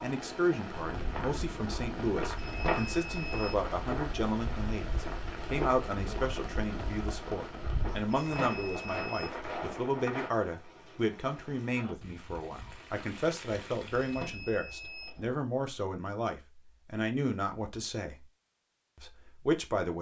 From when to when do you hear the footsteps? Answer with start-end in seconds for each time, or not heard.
0.8-10.3.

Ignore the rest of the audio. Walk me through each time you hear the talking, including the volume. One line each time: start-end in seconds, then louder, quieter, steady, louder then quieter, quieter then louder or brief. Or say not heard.
0.0-18.2 steady
18.9-19.9 brief.